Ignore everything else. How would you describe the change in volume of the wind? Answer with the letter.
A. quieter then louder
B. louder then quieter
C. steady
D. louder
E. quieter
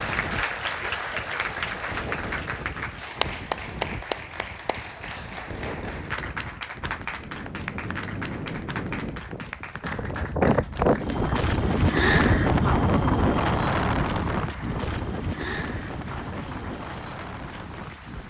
B.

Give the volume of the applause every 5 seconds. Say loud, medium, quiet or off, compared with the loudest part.
loud, medium, medium, quiet.